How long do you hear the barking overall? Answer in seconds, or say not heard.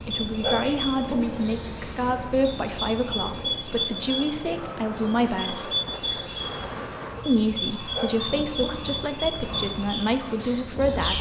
2 s.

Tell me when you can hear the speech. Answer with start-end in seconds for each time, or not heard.
0.0-5.8, 7.2-11.1.